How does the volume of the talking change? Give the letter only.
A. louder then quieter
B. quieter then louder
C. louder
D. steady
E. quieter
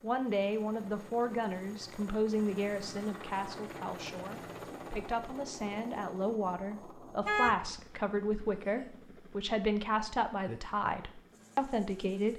B.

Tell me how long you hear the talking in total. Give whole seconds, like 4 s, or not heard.
12 s.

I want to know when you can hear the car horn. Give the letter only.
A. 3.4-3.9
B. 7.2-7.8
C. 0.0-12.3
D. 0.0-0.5
B.